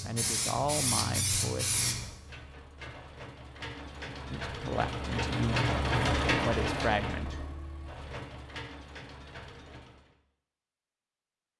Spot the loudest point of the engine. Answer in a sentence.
The volume of the engine peaks at 6 seconds.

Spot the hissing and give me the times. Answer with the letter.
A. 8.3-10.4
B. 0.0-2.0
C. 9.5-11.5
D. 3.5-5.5
B.